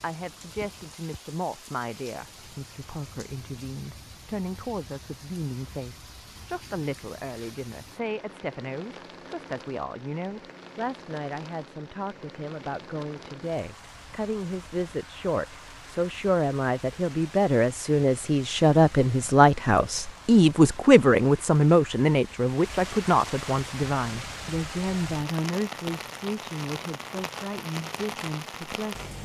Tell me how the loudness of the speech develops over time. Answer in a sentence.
The volume of the speech goes up, then down.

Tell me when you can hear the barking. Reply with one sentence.
You can't hear the barking here.